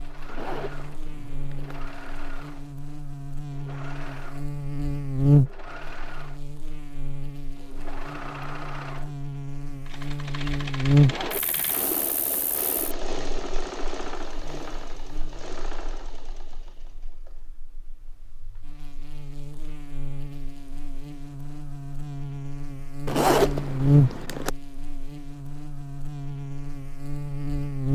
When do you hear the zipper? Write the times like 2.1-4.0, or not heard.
0.2-1.8, 11.0-11.8, 23.1-24.5.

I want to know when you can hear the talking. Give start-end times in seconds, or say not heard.
not heard.